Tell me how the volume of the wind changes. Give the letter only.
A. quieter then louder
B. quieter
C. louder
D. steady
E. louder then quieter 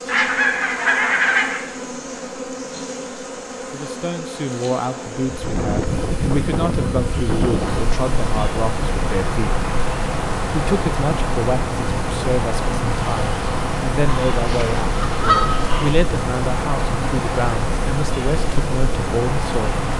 D.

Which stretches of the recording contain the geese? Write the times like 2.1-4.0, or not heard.
0.1-1.6, 14.3-15.9.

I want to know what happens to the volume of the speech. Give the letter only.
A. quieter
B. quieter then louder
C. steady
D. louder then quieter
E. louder
C.